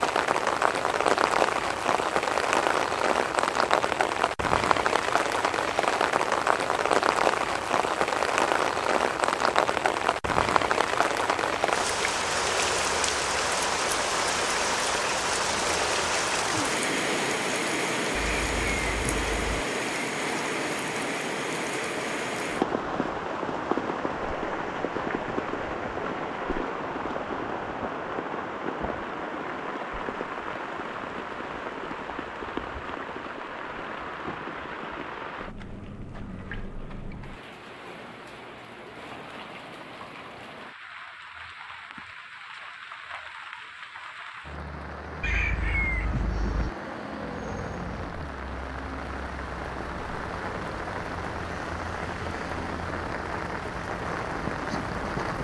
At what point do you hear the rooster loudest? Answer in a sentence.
The loudest moment of the rooster is at 46 seconds.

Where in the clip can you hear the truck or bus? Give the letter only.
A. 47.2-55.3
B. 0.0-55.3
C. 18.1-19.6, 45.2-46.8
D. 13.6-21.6
A.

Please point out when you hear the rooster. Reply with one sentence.
You can hear the rooster from 18.1 to 19.6 s and from 45.2 to 46.8 s.